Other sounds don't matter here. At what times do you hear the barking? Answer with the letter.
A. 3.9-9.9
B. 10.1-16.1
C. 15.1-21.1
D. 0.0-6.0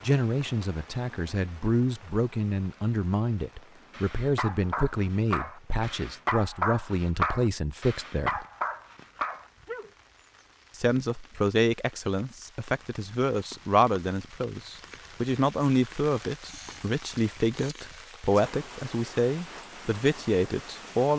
A.